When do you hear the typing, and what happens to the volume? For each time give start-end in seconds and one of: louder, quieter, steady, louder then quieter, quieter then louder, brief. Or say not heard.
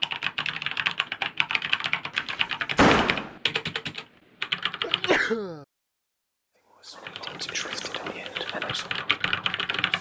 0.0-5.2 steady
7.0-9.9 brief.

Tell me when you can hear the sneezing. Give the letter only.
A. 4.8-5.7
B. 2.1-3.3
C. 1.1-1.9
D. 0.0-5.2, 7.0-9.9
A.